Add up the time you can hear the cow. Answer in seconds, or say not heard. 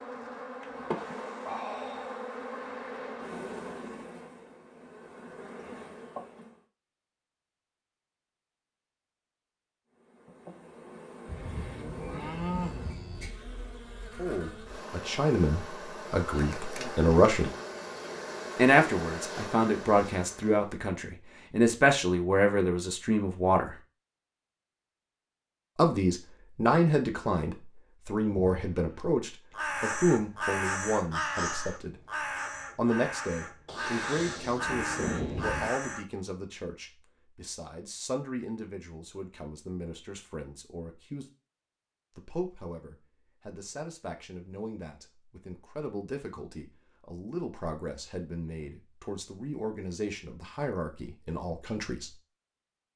4 s.